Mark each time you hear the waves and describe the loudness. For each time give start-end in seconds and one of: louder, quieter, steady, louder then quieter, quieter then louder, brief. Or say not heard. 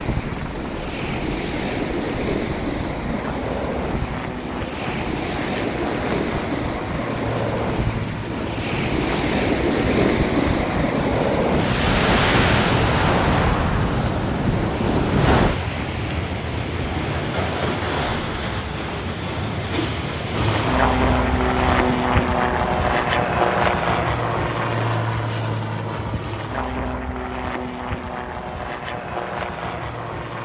0.0-22.2 louder then quieter.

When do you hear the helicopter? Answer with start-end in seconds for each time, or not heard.
0.0-10.8, 20.3-30.3.